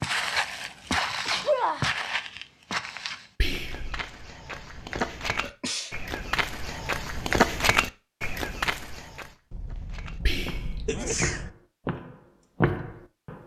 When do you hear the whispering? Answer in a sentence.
You can hear the whispering from 3.4 to 4.0 s and from 10.2 to 10.8 s.